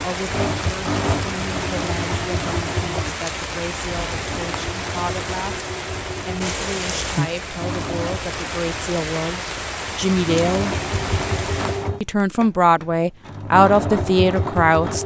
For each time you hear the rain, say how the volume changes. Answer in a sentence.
You can hear the rain from 0.0 to 11.9 s, at a steady volume.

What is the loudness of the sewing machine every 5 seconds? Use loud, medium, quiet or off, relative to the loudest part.
loud, medium, loud.